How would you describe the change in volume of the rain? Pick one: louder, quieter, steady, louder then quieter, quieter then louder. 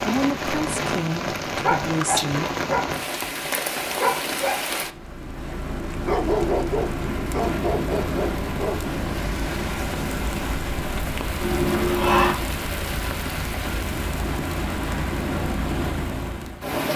steady.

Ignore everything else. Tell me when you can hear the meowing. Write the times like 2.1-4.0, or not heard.
11.4-12.3.